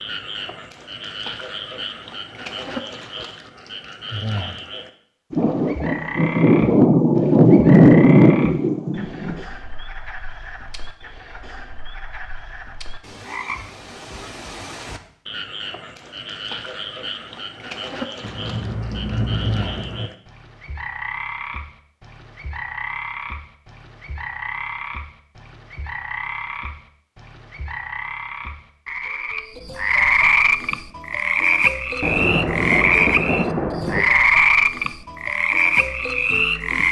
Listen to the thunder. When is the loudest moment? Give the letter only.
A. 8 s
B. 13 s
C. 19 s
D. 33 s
A.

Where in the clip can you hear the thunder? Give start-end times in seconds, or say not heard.
5.3-9.4, 18.2-20.1, 32.0-34.0.